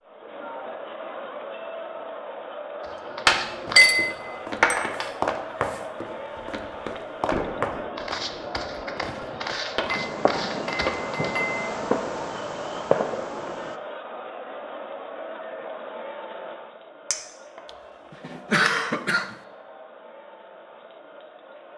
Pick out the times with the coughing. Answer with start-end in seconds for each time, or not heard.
17.6-19.4.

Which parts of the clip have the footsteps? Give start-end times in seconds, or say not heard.
2.8-11.4.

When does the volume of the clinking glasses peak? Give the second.
4 s.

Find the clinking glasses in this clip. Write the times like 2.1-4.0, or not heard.
3.2-5.0, 9.8-11.6, 17.1-17.6.